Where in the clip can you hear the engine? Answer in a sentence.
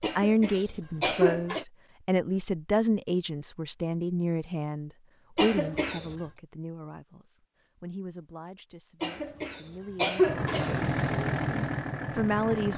The engine can be heard from 10.2 to 12.7 s.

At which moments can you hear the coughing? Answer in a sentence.
You can hear the coughing from 0.0 to 1.6 s, from 5.3 to 6.2 s and from 9.0 to 10.9 s.